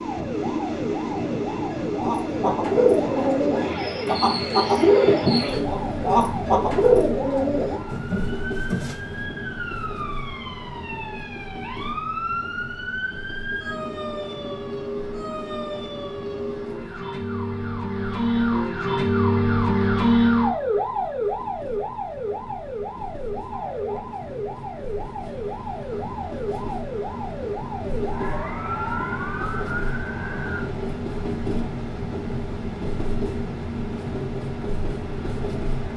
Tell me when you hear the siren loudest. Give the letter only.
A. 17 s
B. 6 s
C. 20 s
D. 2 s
C.